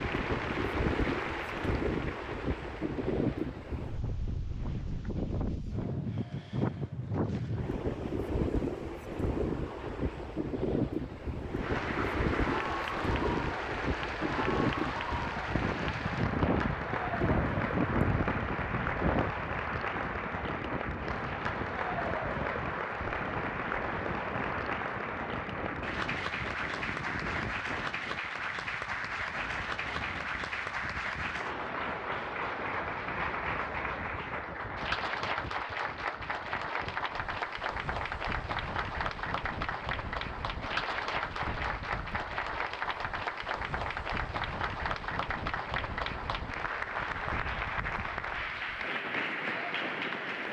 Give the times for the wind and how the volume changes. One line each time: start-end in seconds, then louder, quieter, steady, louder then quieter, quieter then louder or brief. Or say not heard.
0.0-50.4 quieter.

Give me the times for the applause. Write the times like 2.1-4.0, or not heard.
0.0-3.6, 11.5-50.4.